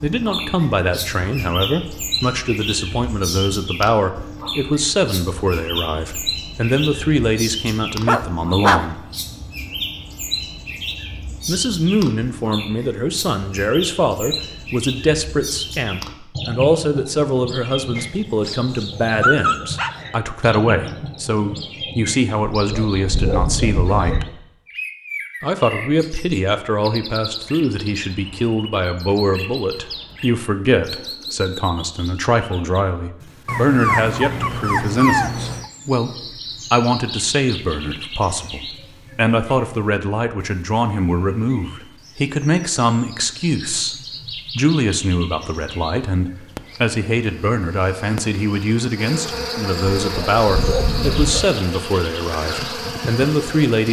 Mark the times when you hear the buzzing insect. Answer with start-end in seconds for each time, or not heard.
46.4-53.8.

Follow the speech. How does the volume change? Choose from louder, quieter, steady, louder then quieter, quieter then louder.
steady.